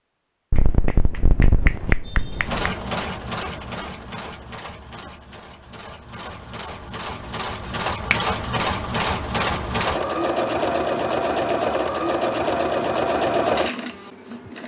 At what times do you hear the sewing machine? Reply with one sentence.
The sewing machine can be heard from 2.4 to 14.6 s.